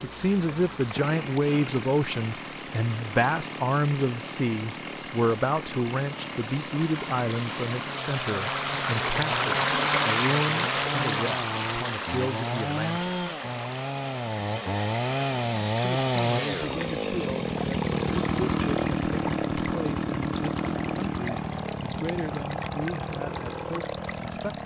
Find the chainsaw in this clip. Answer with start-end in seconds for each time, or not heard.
0.0-24.6.